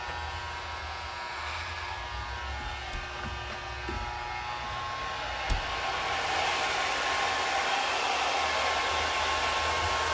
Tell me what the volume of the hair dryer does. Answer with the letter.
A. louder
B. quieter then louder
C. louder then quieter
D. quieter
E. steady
A.